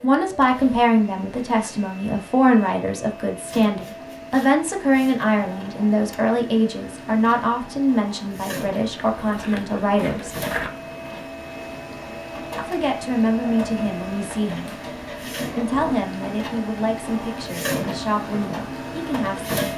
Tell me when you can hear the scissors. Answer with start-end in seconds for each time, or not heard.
9.1-10.7.